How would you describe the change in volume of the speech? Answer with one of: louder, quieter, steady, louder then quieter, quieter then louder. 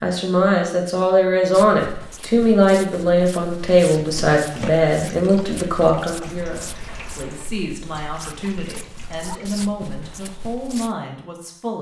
quieter.